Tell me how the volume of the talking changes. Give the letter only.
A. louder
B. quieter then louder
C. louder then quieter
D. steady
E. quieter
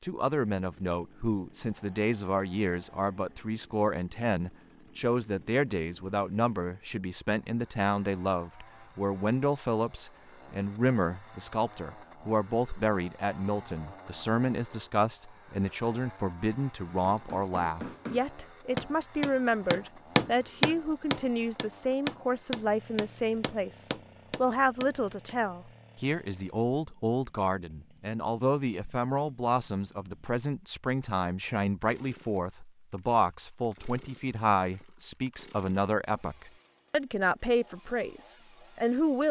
D.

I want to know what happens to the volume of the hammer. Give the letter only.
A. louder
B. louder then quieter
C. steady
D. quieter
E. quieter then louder
B.